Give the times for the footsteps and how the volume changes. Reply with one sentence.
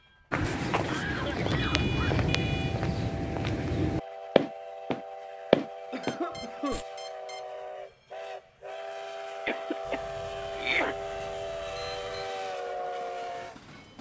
The footsteps can be heard from 0.3 to 6.8 s, getting louder.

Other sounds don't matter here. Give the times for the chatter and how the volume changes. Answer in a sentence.
You can't hear the chatter here.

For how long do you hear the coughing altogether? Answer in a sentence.
You can hear the coughing for 4 seconds altogether.